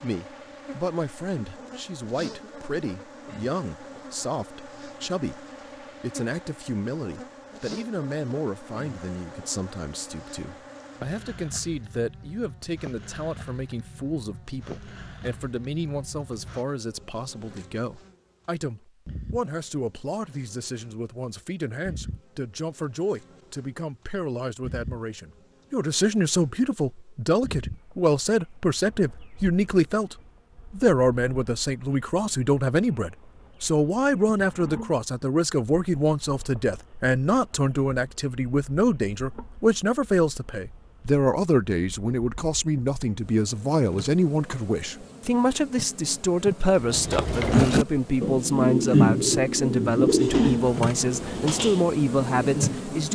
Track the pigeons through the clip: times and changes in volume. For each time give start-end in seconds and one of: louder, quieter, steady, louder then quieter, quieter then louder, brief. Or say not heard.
46.8-53.0 quieter.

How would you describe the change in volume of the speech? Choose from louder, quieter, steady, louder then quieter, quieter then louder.
louder.